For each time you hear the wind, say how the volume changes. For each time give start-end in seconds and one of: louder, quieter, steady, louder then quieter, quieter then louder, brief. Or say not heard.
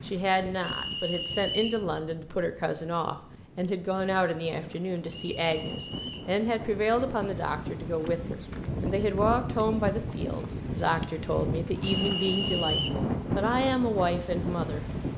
0.0-15.1 louder.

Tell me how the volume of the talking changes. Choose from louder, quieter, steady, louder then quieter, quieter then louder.
steady.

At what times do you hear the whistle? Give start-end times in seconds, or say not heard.
0.6-1.9, 5.1-6.3, 11.8-12.9.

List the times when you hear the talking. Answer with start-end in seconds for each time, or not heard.
0.0-14.8.